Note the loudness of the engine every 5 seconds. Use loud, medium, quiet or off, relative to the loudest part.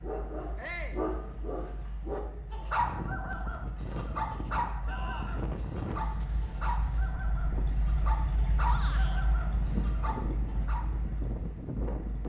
medium, loud, medium.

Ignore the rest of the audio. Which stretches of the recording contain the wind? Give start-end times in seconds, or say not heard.
2.7-12.2.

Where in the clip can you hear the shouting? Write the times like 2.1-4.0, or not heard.
0.6-1.0, 4.8-5.5, 8.7-9.2.